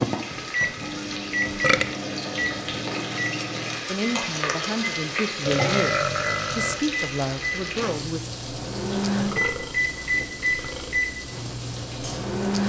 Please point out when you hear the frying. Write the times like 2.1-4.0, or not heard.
0.0-12.6.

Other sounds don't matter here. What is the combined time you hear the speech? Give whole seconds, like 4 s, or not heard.
4 s.